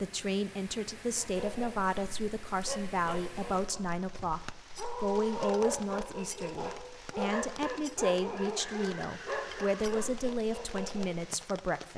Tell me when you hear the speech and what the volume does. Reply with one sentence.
The speech can be heard from 0.0 to 11.9 s, at a steady volume.